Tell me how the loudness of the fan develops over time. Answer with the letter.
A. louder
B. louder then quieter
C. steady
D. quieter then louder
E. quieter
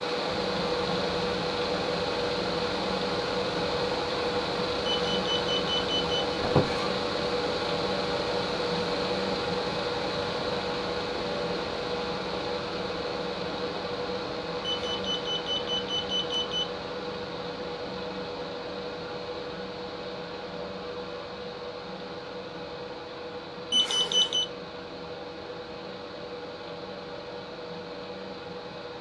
E.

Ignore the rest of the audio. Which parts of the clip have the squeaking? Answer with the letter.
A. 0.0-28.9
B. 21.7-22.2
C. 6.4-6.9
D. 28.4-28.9
C.